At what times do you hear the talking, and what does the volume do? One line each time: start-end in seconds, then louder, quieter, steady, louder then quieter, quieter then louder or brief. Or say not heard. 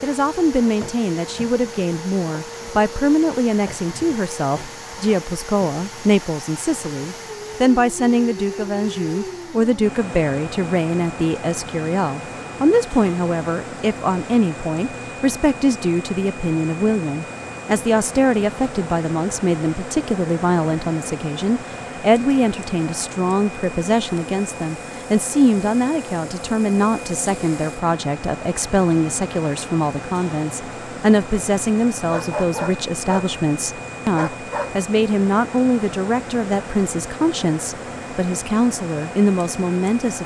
0.0-40.2 steady.